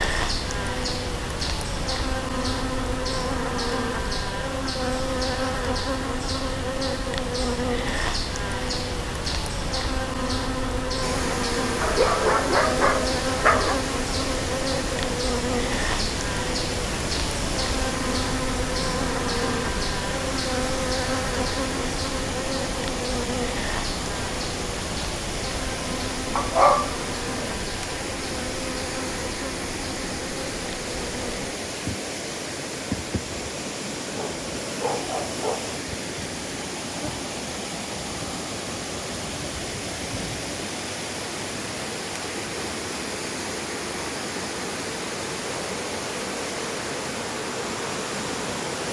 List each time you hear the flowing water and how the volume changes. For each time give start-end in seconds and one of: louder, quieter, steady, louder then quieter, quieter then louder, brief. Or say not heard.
11.0-48.8 steady.